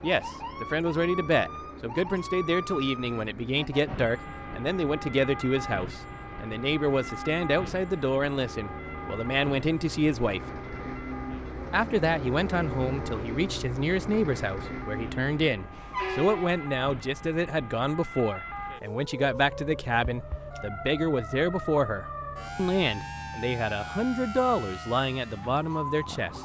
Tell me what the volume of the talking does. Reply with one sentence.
The loudness of the talking stays about the same.